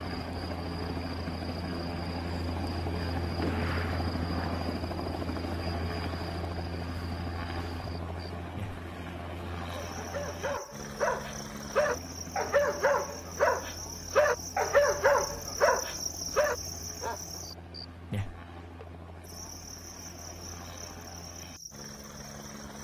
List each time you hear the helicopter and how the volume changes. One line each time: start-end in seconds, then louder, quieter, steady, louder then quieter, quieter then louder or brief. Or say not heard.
0.0-22.7 quieter.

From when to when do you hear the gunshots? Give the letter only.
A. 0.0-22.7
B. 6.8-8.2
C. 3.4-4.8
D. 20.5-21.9
C.